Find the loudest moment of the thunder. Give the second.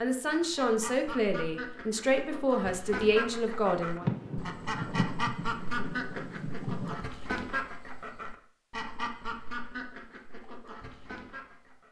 4 s.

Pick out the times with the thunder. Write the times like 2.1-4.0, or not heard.
4.0-7.0.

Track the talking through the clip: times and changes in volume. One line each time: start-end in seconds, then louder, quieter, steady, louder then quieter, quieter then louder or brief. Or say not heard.
0.0-4.0 steady.